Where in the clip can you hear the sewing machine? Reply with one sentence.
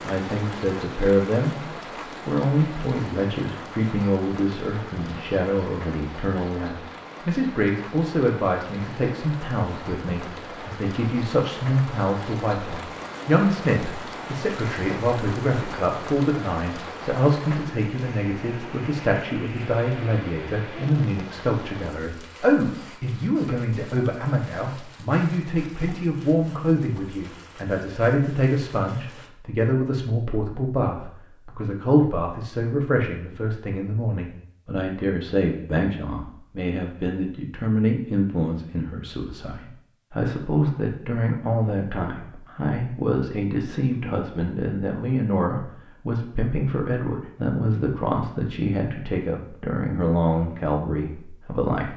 The sewing machine can't be heard in this clip.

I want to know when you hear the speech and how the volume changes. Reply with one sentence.
The speech can be heard from 0.0 to 51.9 s, at a steady volume.